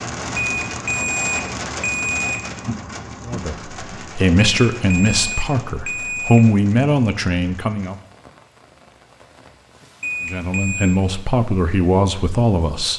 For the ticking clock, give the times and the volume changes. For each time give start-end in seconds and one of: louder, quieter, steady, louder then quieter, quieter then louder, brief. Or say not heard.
not heard.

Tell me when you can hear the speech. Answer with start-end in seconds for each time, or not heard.
3.2-8.0, 10.2-12.9.